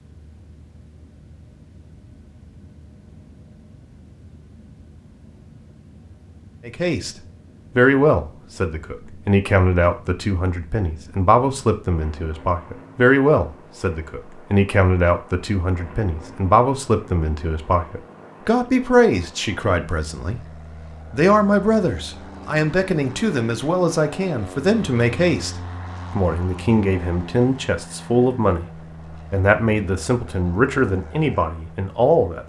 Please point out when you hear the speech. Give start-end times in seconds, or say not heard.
6.7-7.2, 7.8-32.4.